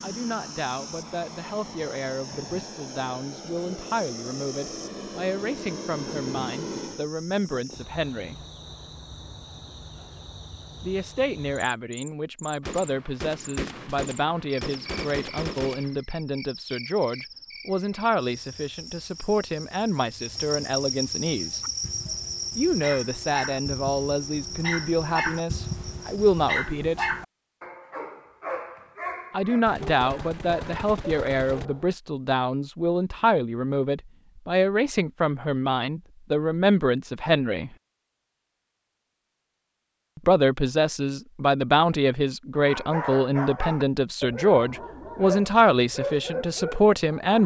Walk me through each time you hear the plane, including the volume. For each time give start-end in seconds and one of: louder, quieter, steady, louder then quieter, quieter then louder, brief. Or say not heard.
0.0-7.1 louder.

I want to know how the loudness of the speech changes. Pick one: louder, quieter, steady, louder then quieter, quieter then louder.
louder.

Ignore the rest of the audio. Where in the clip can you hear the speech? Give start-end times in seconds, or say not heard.
0.0-8.4, 10.8-21.6, 22.6-27.1, 29.3-37.7, 40.1-47.4.